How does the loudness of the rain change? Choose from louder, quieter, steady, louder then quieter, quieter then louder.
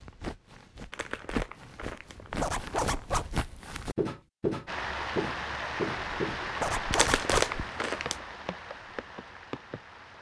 quieter.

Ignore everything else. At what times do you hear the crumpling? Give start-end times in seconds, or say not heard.
0.9-3.0, 6.9-8.2.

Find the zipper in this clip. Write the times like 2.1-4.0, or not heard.
2.4-3.4, 6.6-7.5.